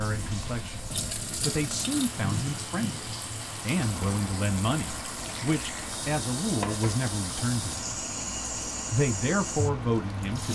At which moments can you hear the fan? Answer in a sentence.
The fan can be heard from 0.0 to 10.5 s.